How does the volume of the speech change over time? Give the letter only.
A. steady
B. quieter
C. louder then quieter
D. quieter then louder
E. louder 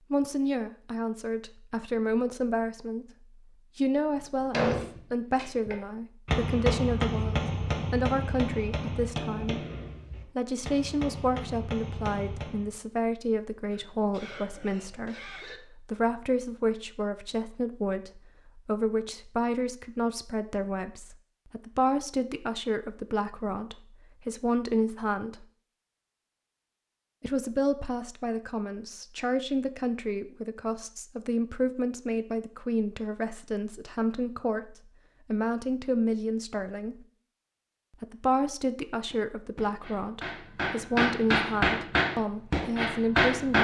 A.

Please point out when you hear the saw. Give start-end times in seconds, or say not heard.
not heard.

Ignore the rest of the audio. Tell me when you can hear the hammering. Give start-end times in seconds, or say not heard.
4.5-12.7, 39.0-43.5.